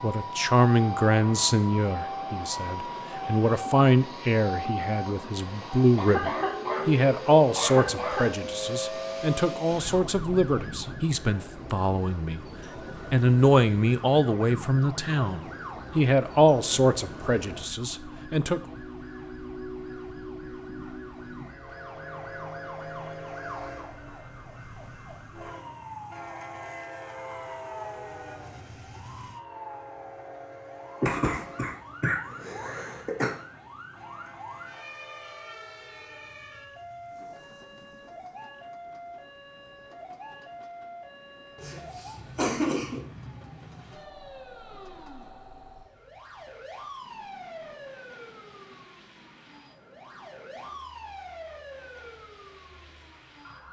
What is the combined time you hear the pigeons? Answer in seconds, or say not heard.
not heard.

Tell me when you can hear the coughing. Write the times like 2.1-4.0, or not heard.
5.9-8.3, 31.0-33.3, 41.5-43.0.